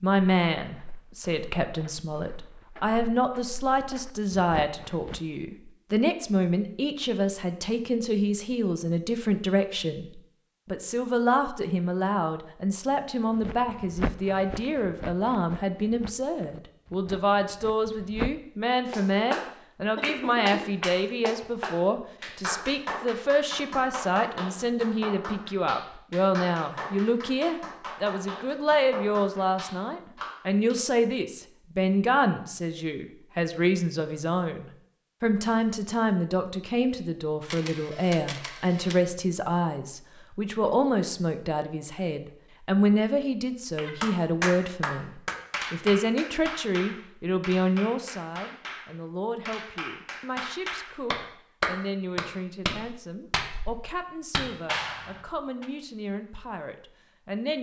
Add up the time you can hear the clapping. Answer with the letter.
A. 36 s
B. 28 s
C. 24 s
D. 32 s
C.